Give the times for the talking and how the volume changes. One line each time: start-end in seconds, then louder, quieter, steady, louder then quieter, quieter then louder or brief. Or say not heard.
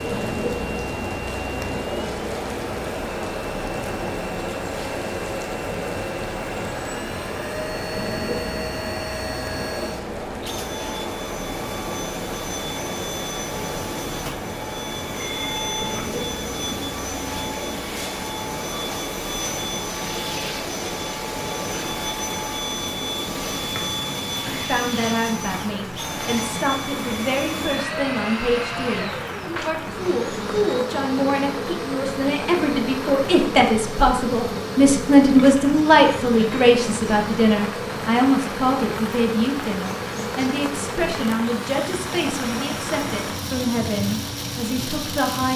24.5-45.5 louder then quieter.